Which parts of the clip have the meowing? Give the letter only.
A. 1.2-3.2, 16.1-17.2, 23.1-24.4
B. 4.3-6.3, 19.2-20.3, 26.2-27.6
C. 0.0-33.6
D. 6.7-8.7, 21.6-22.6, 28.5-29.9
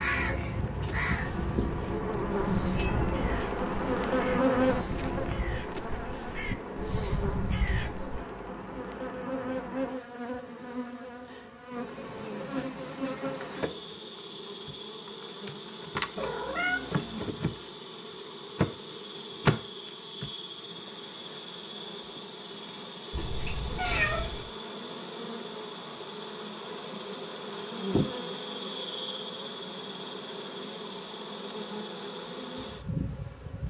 A.